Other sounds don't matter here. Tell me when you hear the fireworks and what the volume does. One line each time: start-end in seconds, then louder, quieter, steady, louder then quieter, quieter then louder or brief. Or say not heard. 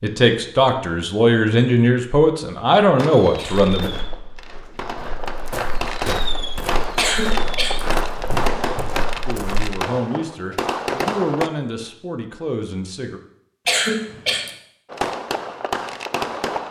3.0-11.5 louder
14.9-16.6 brief.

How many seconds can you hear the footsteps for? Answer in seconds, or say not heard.
6 s.